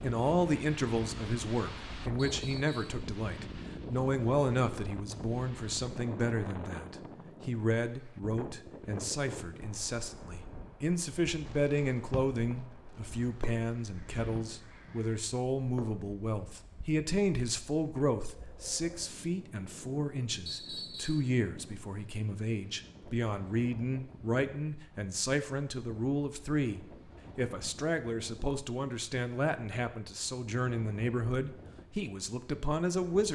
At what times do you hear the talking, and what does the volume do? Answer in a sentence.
The talking can be heard from 0.0 to 33.3 s, at a steady volume.